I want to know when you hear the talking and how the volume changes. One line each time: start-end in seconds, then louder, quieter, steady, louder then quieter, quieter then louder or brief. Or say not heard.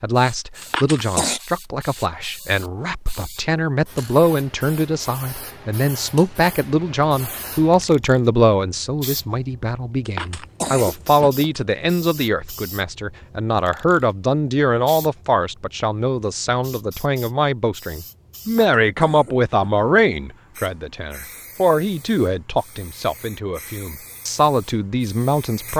0.0-25.7 steady.